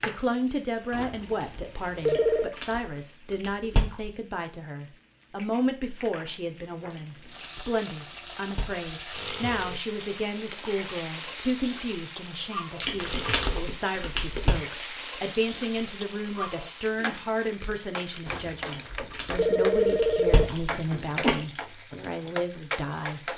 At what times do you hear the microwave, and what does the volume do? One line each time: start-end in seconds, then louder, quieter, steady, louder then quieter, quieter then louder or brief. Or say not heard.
not heard.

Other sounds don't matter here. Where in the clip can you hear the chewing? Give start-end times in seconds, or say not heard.
2.0-4.1, 6.9-8.9, 12.8-14.6, 18.6-21.4.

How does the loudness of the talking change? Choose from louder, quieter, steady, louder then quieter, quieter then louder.
steady.